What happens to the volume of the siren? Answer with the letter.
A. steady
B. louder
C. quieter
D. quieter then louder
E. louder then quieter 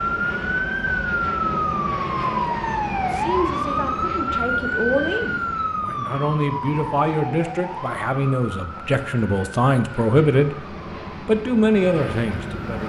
C.